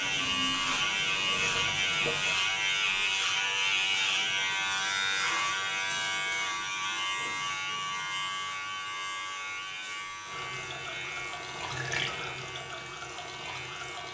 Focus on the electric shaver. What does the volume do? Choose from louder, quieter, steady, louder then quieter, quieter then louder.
quieter.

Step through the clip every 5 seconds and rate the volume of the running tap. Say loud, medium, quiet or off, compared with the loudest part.
loud, off, loud.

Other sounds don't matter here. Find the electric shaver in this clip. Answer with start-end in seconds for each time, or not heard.
0.0-14.0.